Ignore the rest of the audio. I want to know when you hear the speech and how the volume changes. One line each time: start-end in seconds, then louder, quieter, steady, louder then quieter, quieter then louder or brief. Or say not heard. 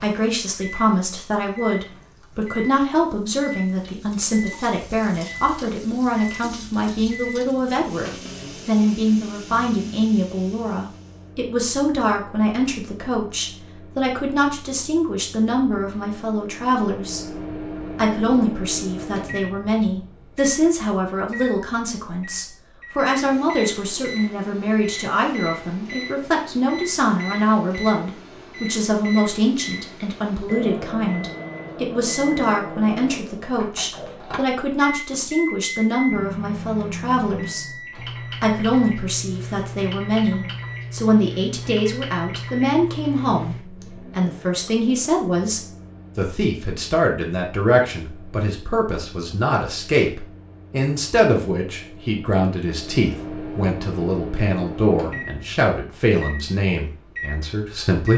0.0-58.1 steady.